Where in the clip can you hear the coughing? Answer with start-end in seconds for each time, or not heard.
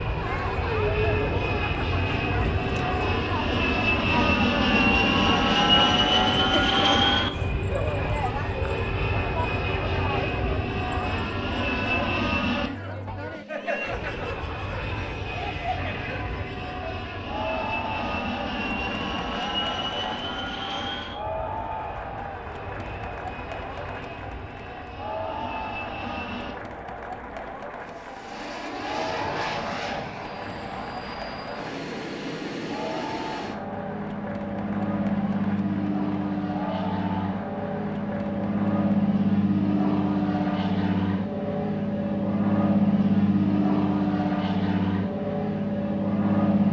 not heard.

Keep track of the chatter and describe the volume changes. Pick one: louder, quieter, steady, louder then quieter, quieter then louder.
quieter.